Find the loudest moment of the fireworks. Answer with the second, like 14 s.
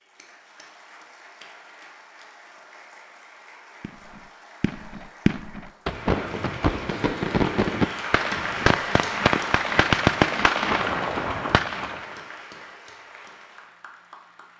10 s.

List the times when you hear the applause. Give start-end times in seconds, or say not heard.
0.0-14.5.